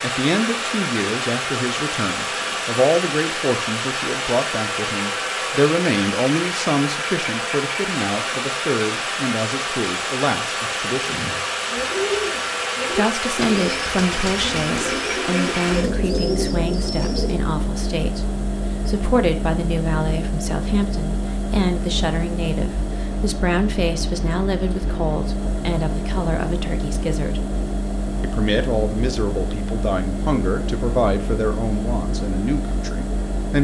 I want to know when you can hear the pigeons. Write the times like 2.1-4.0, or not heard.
11.0-17.5.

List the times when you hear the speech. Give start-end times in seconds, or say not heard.
0.0-11.2, 12.9-27.4, 28.2-33.5.